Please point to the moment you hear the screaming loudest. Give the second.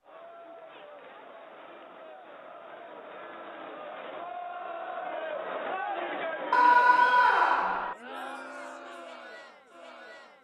7 s.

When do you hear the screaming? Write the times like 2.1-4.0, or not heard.
6.5-8.0.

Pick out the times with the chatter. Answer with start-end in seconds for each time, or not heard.
0.0-10.3.